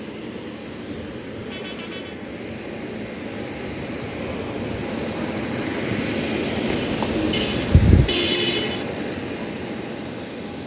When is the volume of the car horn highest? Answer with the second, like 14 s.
8 s.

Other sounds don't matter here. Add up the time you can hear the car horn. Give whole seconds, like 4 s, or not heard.
2 s.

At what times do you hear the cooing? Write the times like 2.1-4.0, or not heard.
6.8-8.2.